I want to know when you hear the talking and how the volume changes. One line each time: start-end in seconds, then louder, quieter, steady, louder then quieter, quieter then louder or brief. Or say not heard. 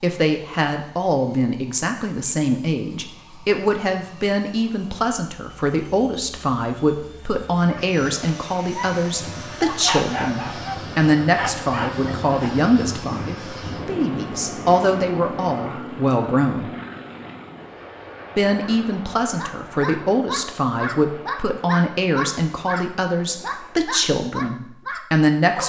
0.0-16.7 steady
18.4-25.6 steady.